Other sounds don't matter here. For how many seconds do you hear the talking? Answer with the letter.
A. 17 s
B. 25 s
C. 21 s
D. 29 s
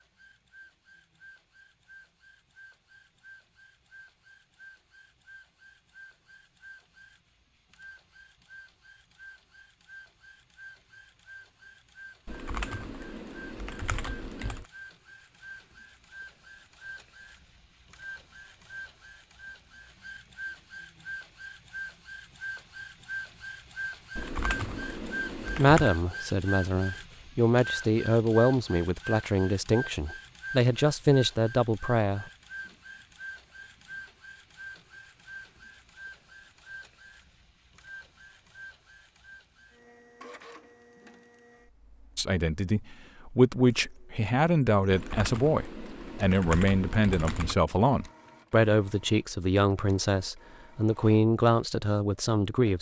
A.